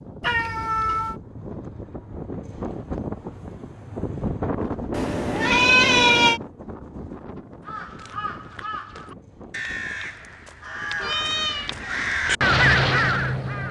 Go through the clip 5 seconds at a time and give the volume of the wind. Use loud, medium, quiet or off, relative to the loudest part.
loud, medium, quiet.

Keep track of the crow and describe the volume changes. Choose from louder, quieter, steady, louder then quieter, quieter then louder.
louder.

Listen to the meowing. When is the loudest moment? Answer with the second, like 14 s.
6 s.